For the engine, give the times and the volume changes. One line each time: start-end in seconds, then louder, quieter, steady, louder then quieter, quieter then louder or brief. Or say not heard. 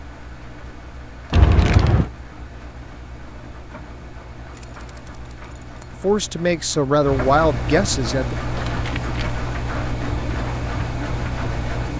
0.0-11.9 louder.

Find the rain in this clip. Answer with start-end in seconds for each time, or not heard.
not heard.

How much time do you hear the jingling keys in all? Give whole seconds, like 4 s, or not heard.
3 s.